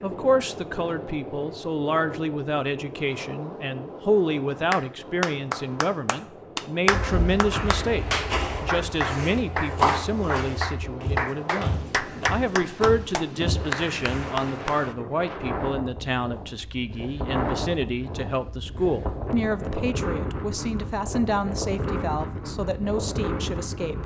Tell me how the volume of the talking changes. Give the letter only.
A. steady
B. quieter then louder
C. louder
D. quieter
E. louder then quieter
A.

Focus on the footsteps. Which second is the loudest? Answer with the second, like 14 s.
10 s.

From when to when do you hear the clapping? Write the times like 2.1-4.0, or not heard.
4.7-14.9.